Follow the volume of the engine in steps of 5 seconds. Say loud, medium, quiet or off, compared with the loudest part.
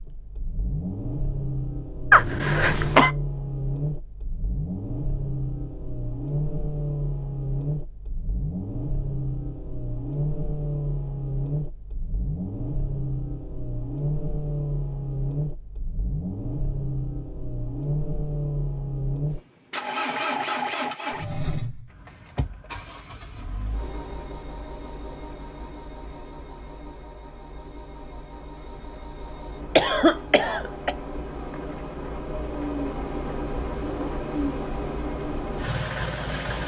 loud, loud, loud, loud, loud, quiet, loud, loud.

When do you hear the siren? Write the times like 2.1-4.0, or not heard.
not heard.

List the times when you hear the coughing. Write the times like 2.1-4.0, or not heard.
2.1-3.1, 29.8-30.9.